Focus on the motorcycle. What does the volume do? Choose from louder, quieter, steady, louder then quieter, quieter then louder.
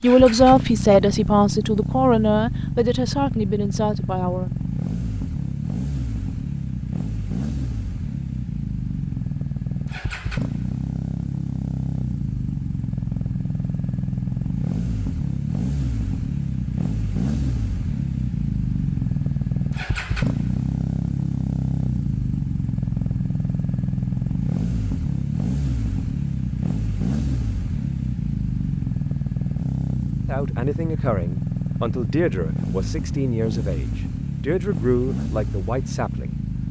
steady.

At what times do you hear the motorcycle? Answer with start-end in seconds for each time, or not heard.
0.0-36.6.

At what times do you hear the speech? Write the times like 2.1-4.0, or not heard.
0.0-4.5, 30.2-36.4.